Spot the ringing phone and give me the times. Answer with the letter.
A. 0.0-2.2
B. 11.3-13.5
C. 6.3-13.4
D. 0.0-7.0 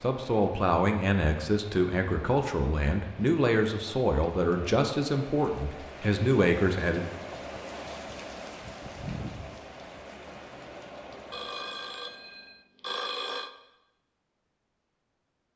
B.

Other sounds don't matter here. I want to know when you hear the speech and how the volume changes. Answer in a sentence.
The speech can be heard from 0.0 to 7.0 s, at a steady volume.